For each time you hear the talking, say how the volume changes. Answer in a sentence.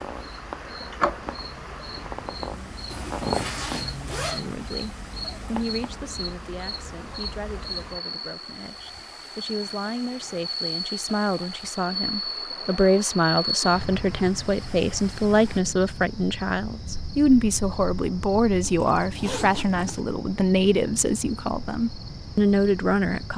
You can hear the talking from 4.2 to 23.3 s, getting louder.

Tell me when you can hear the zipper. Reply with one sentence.
The zipper can be heard from 2.9 to 4.4 s, from 12.2 to 12.8 s and from 18.6 to 20.0 s.